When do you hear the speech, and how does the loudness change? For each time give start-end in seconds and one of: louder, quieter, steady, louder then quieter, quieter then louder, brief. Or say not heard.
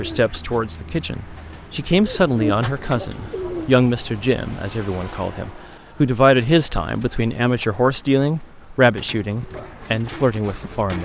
0.0-10.9 steady.